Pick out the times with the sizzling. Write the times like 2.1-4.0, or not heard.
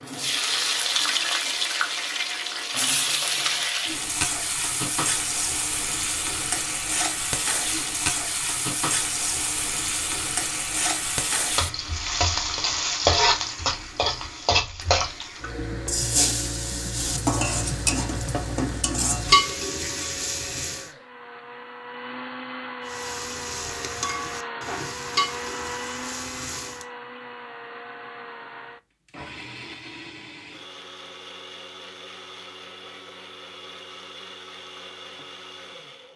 0.1-20.9, 22.9-26.9.